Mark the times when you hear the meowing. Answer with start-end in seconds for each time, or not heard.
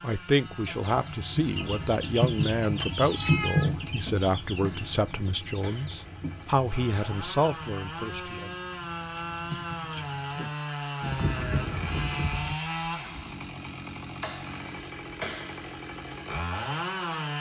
2.6-4.3, 11.0-12.6.